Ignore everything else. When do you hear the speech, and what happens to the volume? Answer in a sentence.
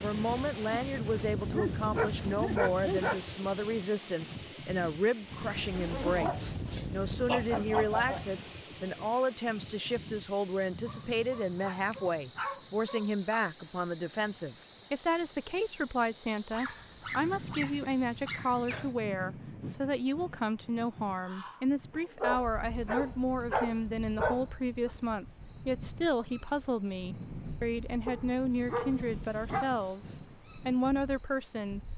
The speech can be heard from 0.0 to 31.8 s, at a steady volume.